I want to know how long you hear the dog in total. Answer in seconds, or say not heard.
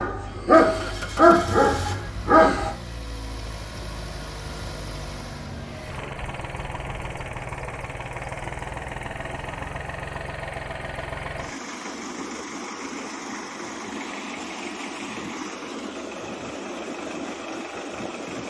3 s.